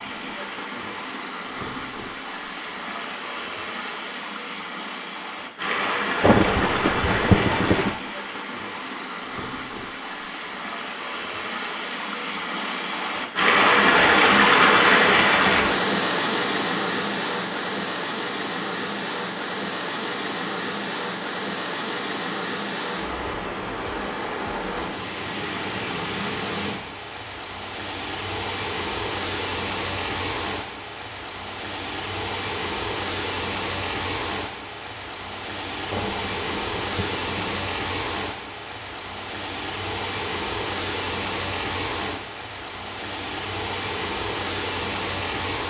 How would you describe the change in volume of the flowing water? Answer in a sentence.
The loudness of the flowing water goes up, then down.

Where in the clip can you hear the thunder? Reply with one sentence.
You can hear the thunder from 6.2 to 8.0 s and from 35.9 to 37.6 s.